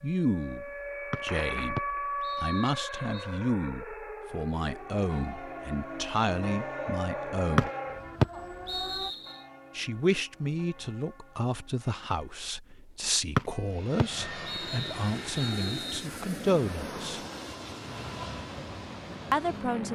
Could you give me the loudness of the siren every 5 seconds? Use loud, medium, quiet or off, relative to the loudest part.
loud, loud, off, off.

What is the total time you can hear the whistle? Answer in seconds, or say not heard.
7 s.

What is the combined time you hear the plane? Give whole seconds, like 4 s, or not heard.
6 s.